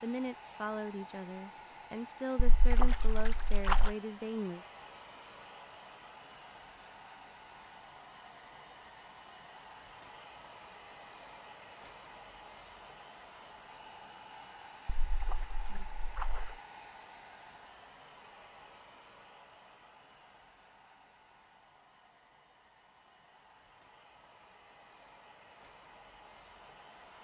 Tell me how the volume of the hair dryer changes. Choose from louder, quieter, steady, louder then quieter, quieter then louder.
quieter.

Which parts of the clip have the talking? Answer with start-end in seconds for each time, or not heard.
0.0-4.7.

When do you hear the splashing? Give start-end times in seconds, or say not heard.
2.4-4.0, 15.0-16.6.